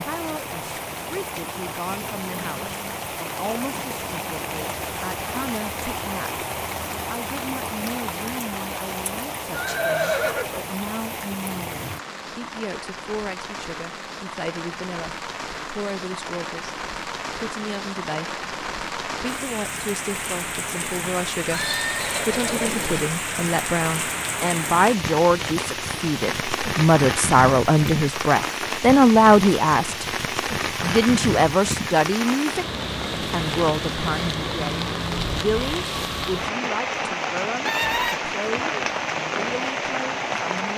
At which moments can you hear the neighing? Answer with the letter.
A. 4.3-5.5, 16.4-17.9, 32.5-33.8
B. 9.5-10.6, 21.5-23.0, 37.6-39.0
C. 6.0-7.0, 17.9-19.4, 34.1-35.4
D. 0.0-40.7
B.